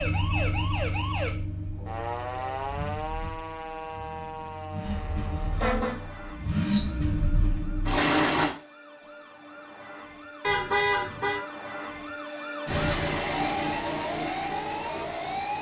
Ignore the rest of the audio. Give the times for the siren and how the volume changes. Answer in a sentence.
You can hear the siren from 0.0 to 15.5 s, getting quieter then louder.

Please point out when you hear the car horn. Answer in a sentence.
You can hear the car horn from 4.8 to 6.0 s and from 10.4 to 11.4 s.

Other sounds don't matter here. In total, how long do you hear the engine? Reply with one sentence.
You can hear the engine for 11 seconds altogether.